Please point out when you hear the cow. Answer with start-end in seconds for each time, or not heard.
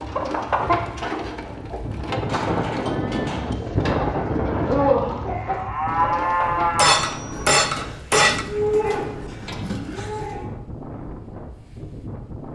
2.2-10.5.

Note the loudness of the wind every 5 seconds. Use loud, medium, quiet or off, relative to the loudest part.
loud, medium, medium.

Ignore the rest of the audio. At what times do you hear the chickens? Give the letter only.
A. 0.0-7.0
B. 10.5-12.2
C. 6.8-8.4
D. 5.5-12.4
A.